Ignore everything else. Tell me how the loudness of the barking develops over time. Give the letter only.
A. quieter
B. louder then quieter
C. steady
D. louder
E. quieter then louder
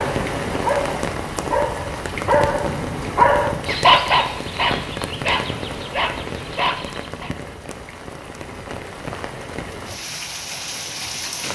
B.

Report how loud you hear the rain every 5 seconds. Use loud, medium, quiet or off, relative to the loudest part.
loud, medium, loud.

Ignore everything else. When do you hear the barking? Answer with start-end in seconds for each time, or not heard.
0.0-7.3.